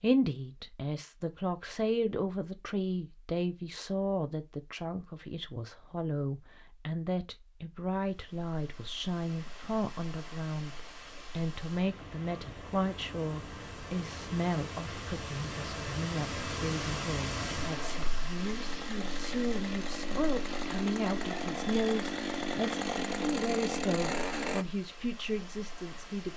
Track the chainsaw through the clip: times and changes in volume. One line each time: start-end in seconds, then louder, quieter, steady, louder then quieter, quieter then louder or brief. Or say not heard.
18.4-24.6 louder.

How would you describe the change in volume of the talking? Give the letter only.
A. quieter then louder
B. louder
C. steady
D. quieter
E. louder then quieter
C.